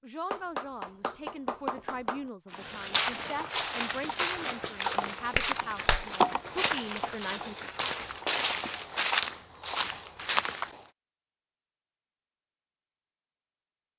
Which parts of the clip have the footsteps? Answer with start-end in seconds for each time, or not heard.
2.5-10.8.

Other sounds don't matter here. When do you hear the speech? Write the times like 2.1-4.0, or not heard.
0.0-7.5.